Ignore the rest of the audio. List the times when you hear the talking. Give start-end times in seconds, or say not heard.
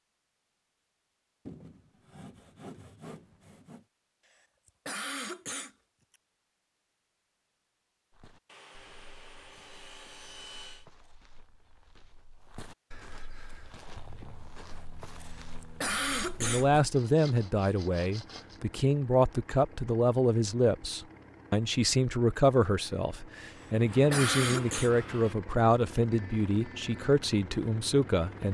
16.4-28.4.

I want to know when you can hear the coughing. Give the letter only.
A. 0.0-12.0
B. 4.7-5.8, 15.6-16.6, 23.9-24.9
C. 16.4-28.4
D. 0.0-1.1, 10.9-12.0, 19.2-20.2
B.